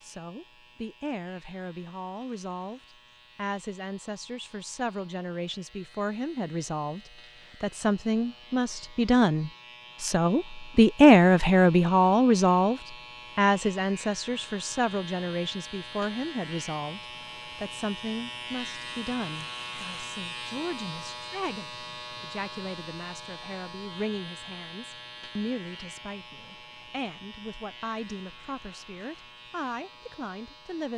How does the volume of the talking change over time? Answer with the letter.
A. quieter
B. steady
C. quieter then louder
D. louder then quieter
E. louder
D.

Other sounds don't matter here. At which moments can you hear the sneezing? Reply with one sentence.
You can't hear the sneezing here.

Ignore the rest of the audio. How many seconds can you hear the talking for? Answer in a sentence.
The talking can be heard for 31 seconds in total.